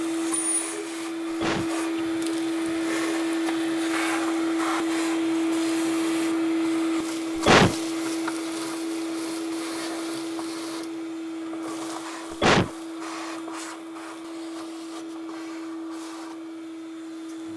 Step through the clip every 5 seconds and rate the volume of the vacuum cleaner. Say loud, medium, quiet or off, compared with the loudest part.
loud, loud, medium, medium.